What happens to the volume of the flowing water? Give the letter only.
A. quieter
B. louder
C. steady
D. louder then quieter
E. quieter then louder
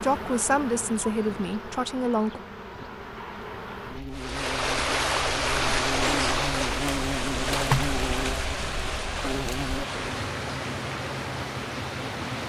A.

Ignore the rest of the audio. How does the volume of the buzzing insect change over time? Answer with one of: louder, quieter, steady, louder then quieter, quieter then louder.
louder then quieter.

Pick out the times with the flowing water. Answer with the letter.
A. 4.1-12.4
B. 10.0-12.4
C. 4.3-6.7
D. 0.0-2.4
A.